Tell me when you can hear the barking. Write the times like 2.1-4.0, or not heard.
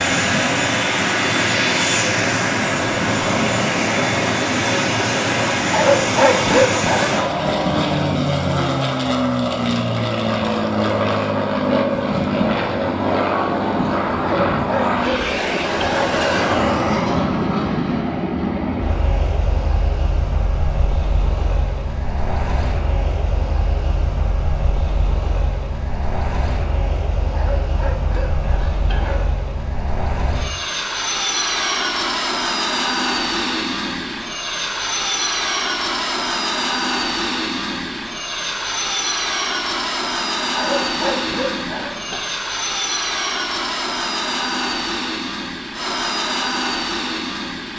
5.7-7.2, 14.2-16.1, 27.3-29.2, 40.5-42.2.